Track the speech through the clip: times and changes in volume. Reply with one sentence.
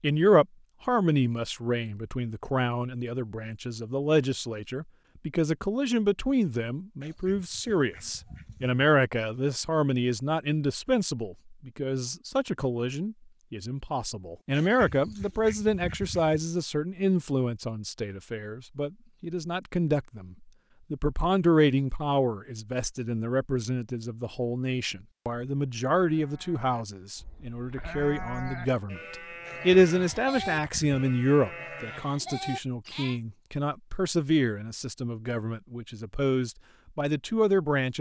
You can hear the speech from 0.0 to 37.9 s, at a steady volume.